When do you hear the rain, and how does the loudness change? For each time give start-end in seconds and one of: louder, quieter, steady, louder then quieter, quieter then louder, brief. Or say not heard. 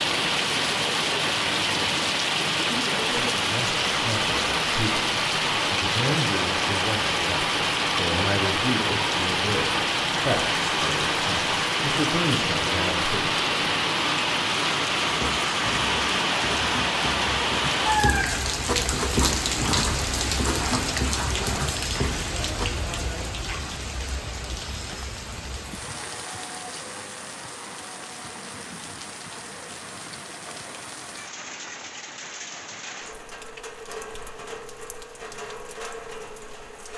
0.0-36.9 quieter.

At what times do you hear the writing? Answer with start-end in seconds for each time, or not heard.
15.0-22.9.